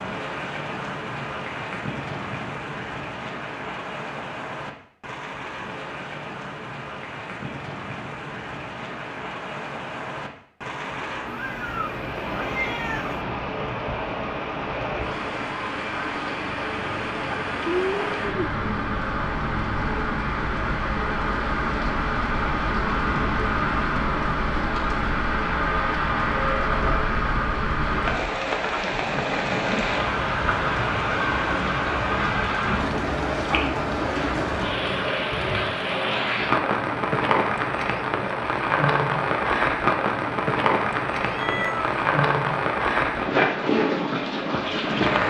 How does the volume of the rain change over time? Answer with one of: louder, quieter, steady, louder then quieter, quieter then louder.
louder.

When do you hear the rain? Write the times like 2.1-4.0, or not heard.
0.0-45.2.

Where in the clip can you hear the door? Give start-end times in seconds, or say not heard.
not heard.